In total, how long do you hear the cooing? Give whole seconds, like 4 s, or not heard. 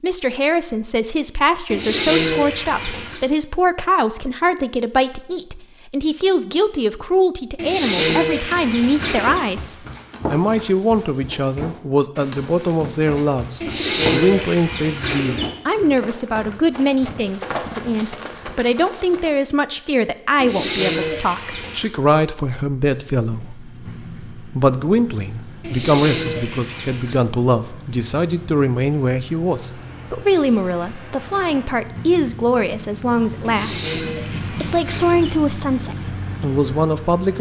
10 s.